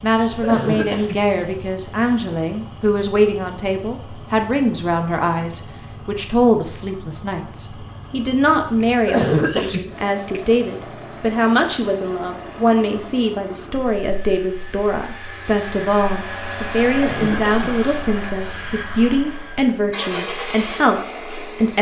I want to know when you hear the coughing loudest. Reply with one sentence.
The volume of the coughing peaks at 9 seconds.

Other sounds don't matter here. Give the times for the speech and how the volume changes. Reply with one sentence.
The speech can be heard from 0.0 to 21.7 s, at a steady volume.